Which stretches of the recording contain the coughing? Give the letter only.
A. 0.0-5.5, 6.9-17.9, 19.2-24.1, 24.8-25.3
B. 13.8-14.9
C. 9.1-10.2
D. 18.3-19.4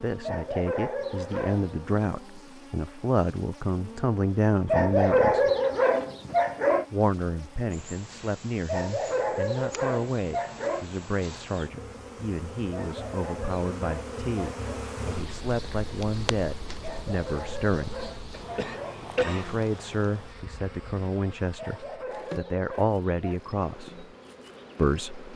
D.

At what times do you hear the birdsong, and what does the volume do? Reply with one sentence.
The birdsong can't be heard in this clip.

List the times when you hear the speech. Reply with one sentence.
The speech can be heard from 0.0 to 5.5 s, from 6.9 to 17.9 s, from 19.2 to 24.1 s and from 24.8 to 25.3 s.